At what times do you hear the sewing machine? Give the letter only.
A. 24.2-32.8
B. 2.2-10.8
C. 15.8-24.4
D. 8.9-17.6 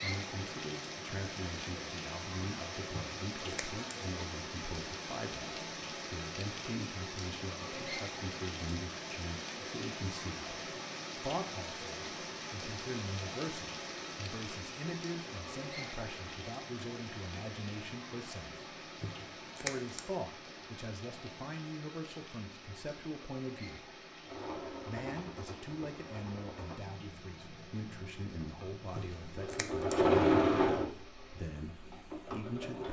A.